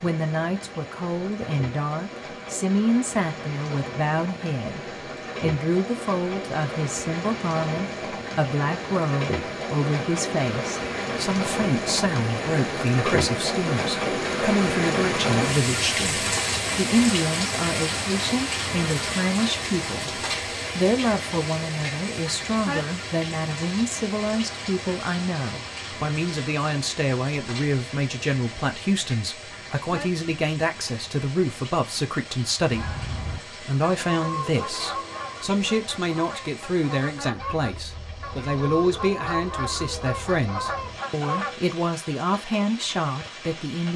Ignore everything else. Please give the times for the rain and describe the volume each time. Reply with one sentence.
The rain can be heard from 0.0 to 43.9 s, getting louder then quieter.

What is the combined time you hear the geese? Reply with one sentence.
You can hear the geese for 9 seconds altogether.